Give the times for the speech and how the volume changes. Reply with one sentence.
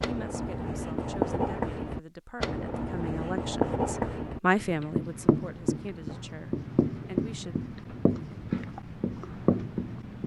You can hear the speech from 0.0 to 7.5 s, getting louder then quieter.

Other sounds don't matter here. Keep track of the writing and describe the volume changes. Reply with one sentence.
The loudness of the writing stays about the same.